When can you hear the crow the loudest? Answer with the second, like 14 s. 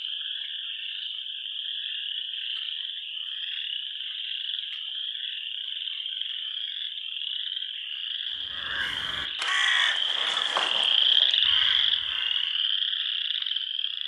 10 s.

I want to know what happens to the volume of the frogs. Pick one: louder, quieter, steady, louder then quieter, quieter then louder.
louder.